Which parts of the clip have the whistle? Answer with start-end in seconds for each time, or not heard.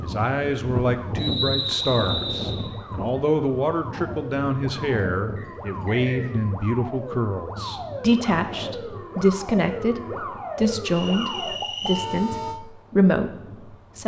1.1-2.6, 5.3-6.3, 10.9-12.2.